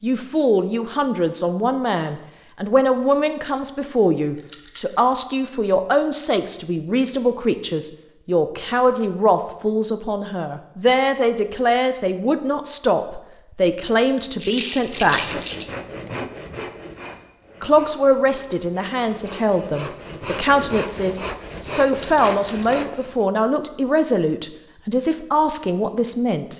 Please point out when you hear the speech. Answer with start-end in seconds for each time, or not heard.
0.0-15.4, 17.6-26.5.